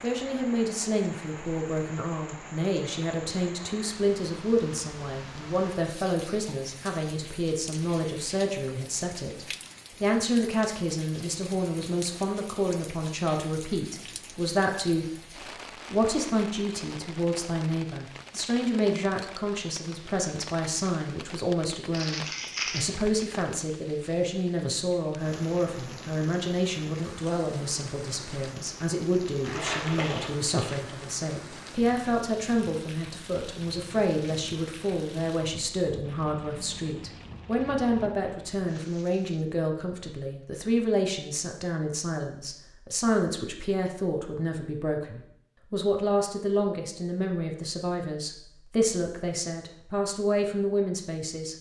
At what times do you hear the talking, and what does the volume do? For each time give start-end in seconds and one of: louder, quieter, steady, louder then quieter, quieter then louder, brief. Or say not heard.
0.0-15.1 steady
15.9-51.5 steady.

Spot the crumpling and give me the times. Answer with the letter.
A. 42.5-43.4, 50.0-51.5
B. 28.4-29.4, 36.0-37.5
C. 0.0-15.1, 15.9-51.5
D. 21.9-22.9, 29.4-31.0
D.